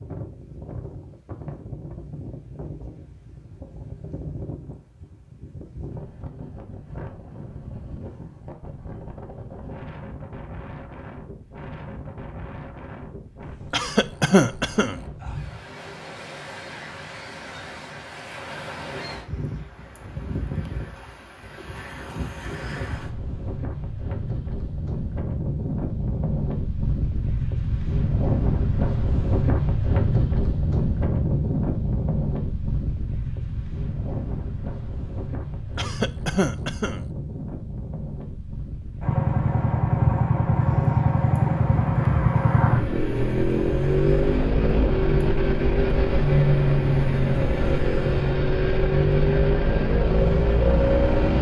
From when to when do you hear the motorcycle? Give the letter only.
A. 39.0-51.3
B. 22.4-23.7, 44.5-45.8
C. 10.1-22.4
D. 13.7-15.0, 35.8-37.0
A.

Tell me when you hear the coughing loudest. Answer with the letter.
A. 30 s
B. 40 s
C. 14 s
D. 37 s
C.